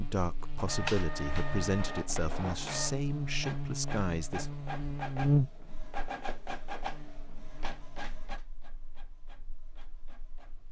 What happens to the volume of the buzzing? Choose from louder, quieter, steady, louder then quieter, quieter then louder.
louder then quieter.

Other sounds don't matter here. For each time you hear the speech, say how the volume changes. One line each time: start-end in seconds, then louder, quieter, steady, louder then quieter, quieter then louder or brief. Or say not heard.
0.0-4.5 steady.